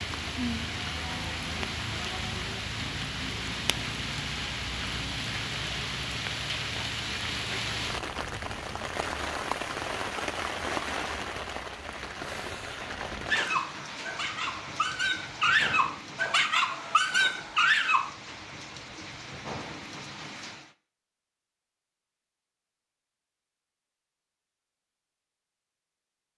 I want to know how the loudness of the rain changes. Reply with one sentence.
The volume of the rain goes down.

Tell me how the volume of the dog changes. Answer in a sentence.
The volume of the dog goes up.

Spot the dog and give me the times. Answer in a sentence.
You can hear the dog from 13.2 to 18.1 s.